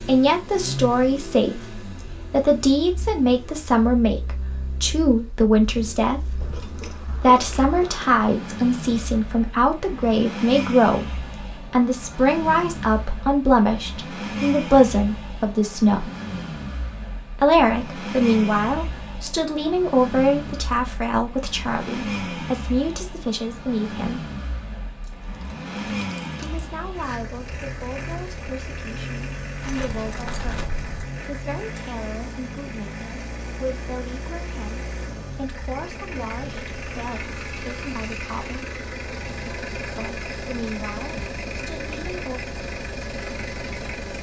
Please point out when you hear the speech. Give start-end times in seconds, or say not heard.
0.0-16.1, 17.4-24.3, 26.4-38.8, 40.0-42.5.